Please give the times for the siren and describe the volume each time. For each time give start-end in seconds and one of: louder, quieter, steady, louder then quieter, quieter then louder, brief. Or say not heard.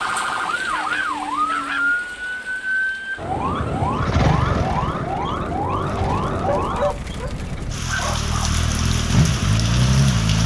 0.0-7.0 steady.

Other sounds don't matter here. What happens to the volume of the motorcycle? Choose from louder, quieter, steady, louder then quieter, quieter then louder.
quieter then louder.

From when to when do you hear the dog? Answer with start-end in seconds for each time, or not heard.
0.7-1.9, 6.5-8.5.